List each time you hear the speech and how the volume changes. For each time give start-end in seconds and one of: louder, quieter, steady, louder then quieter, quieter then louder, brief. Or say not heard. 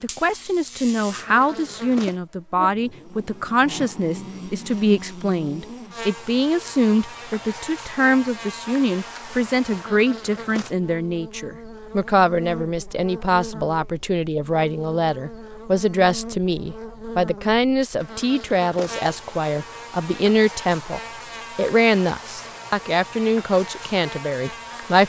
0.0-25.0 steady.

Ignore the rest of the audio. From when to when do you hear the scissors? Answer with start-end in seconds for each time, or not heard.
not heard.